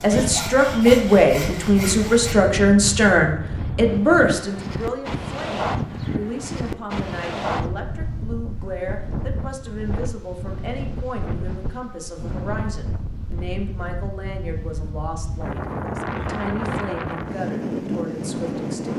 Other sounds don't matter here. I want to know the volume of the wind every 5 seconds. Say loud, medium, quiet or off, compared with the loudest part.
loud, loud, medium, loud.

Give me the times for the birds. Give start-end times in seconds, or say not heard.
not heard.